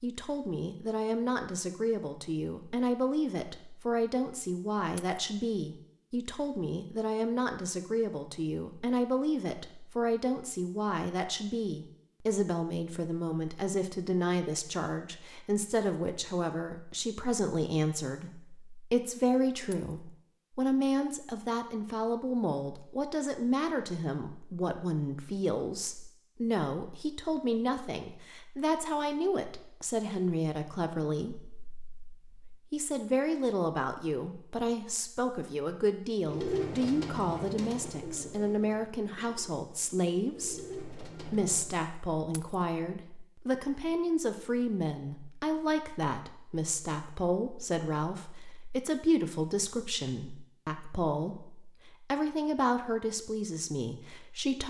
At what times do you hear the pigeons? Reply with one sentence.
You can hear the pigeons from 36.2 to 41.8 s.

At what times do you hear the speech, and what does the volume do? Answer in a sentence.
The speech can be heard from 0.0 to 54.6 s, at a steady volume.